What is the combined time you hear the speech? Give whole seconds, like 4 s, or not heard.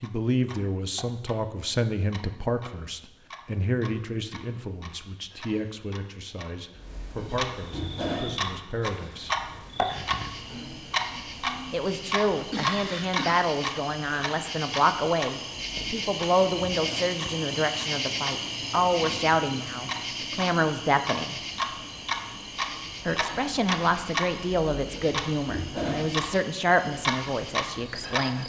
24 s.